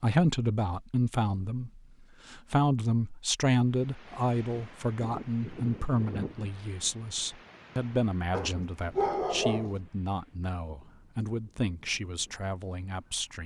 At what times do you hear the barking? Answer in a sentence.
The barking can be heard from 8.3 to 9.8 s.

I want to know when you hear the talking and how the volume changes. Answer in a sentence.
The talking can be heard from 0.0 to 13.4 s, getting quieter.